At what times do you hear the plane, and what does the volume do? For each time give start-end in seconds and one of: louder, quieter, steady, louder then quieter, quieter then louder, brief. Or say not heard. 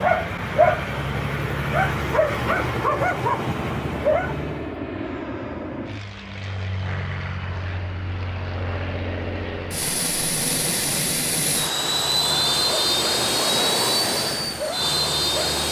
0.1-15.6 louder.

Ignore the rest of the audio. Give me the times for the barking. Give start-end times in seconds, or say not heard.
0.0-4.8, 11.8-15.6.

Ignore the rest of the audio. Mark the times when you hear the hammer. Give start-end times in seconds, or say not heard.
not heard.